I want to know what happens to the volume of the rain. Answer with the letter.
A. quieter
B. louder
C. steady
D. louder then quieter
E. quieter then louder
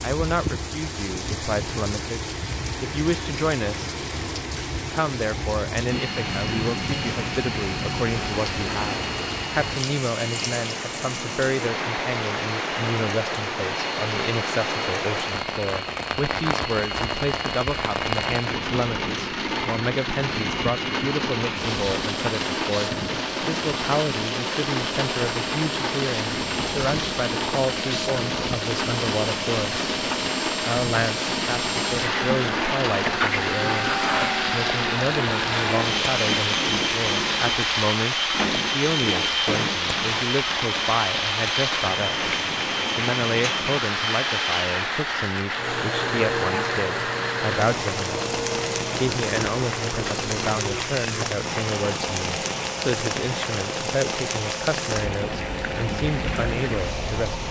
C.